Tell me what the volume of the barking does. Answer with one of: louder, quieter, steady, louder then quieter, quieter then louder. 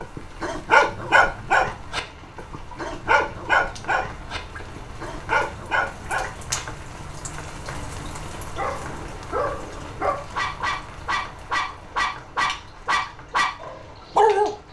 quieter then louder.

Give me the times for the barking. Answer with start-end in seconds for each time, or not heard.
0.0-6.6, 8.5-14.6.